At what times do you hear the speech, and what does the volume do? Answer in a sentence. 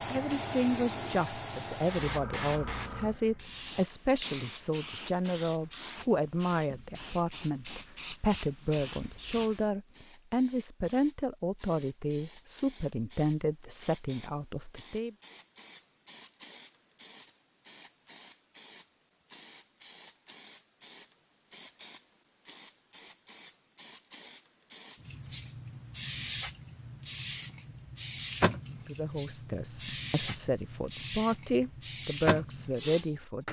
The speech can be heard from 0.1 to 15.2 s, at a steady volume; and from 28.7 to 33.4 s, getting louder.